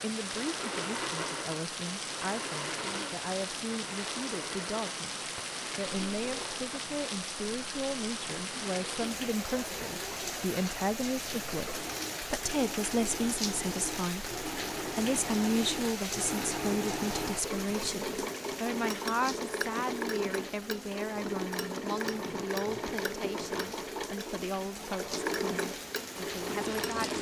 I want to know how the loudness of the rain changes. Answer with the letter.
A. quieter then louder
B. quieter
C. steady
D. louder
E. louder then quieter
B.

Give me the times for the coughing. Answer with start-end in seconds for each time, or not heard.
not heard.